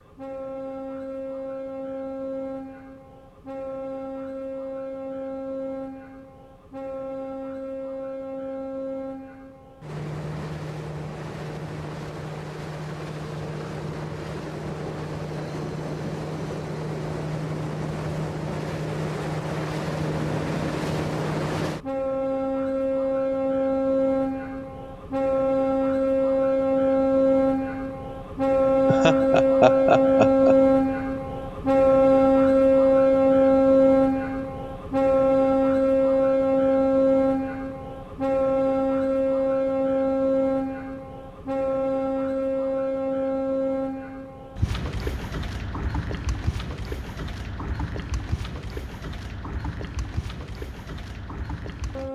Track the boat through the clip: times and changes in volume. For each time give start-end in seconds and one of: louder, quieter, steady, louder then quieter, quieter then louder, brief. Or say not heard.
0.0-52.1 louder then quieter.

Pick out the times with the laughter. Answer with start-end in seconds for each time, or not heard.
28.9-30.6.